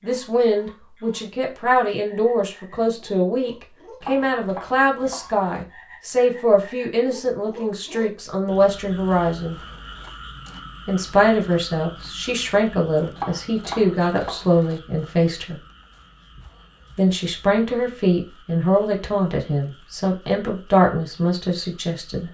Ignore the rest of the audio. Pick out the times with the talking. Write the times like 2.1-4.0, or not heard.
0.0-9.6, 10.8-15.6, 16.9-22.2.